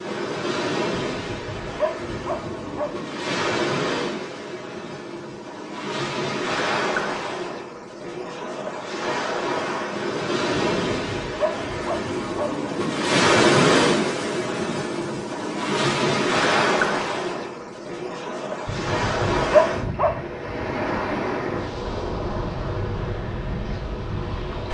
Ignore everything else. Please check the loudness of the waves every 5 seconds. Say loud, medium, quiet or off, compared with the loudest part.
medium, medium, loud, loud, medium.